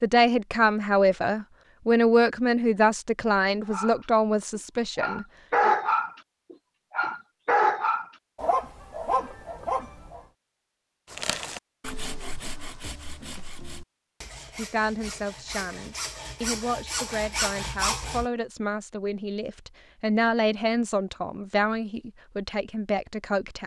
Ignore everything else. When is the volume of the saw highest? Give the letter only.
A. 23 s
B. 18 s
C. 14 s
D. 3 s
B.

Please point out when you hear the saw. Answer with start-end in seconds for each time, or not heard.
11.1-18.2.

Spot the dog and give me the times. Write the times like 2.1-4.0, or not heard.
3.6-10.2.